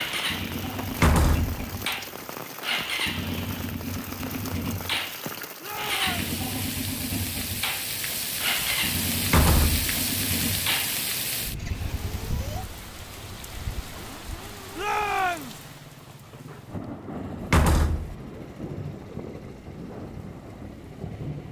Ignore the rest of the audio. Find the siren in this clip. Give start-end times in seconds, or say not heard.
not heard.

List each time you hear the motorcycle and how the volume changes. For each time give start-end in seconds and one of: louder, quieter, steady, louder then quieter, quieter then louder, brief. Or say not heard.
0.0-21.4 quieter.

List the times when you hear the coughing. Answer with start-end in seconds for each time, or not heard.
not heard.